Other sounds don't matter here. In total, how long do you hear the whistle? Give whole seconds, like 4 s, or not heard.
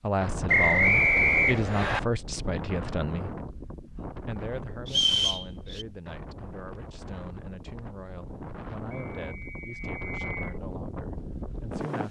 4 s.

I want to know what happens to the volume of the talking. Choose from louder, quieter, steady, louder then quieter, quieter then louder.
quieter.